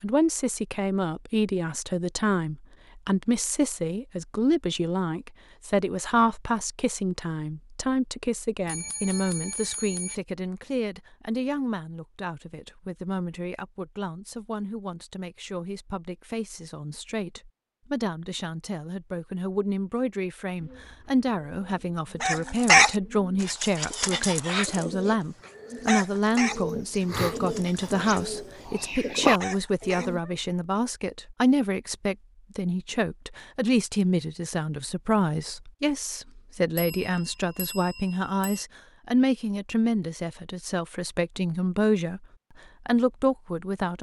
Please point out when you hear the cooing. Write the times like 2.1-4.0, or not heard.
20.6-30.2.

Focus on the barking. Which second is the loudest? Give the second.
23 s.